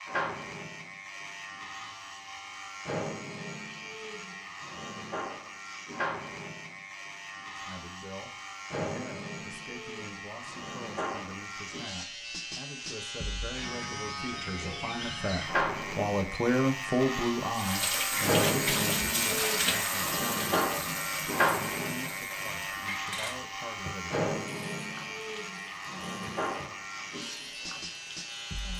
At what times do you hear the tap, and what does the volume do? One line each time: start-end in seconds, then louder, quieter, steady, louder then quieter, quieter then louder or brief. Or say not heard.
17.5-28.7 quieter.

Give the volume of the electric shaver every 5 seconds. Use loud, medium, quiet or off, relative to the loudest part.
medium, medium, medium, loud, loud, medium.